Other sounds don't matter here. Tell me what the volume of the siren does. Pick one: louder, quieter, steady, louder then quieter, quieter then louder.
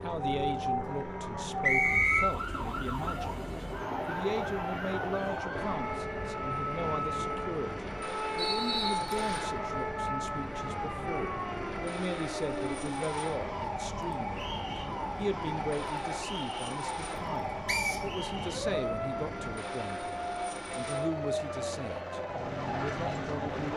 steady.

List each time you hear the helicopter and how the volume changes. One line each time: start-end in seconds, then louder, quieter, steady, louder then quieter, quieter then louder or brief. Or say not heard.
0.0-23.7 steady.